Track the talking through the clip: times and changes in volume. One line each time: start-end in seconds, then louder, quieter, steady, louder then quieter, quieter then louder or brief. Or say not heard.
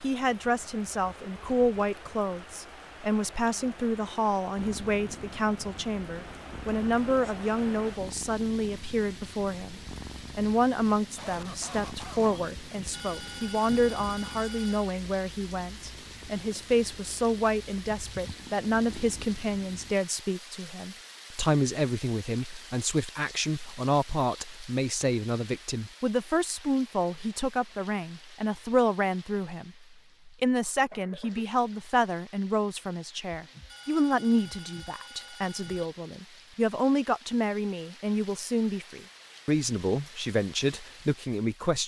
0.0-41.8 steady.